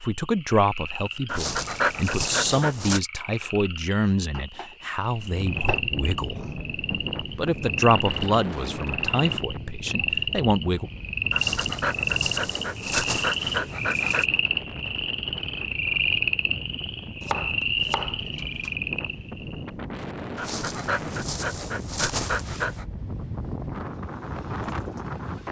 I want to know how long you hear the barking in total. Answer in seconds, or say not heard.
7 s.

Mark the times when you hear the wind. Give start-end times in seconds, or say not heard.
5.2-25.4.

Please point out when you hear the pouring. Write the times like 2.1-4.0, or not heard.
not heard.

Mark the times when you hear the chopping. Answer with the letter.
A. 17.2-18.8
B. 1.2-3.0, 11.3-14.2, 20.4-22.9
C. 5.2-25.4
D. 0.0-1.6
A.